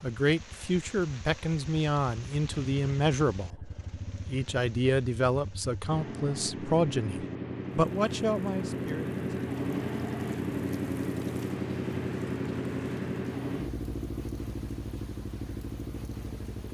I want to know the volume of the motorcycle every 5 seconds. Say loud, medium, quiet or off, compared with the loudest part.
quiet, loud, loud, medium.